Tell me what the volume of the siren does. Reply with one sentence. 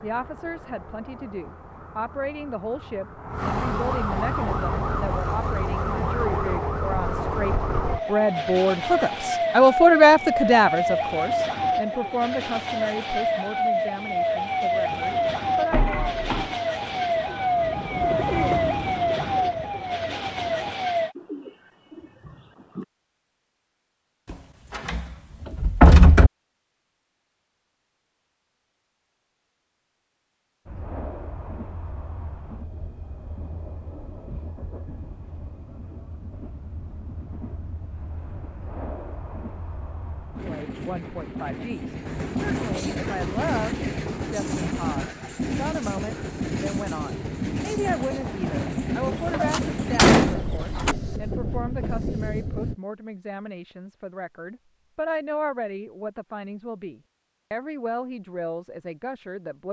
The volume of the siren goes up.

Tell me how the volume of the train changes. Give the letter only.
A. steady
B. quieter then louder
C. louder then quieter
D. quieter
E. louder
E.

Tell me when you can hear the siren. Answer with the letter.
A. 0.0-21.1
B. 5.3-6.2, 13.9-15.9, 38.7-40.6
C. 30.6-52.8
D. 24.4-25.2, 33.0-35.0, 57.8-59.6
A.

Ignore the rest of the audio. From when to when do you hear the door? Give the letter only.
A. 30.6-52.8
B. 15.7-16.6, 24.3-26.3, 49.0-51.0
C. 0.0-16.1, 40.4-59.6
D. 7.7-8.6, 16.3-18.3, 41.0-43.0
B.